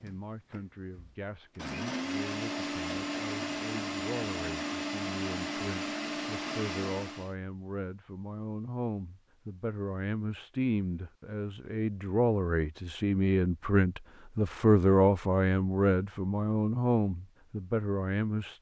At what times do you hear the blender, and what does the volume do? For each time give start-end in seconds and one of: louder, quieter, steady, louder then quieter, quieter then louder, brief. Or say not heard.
0.0-7.3 louder.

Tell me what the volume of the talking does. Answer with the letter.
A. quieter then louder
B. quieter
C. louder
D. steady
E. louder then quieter
C.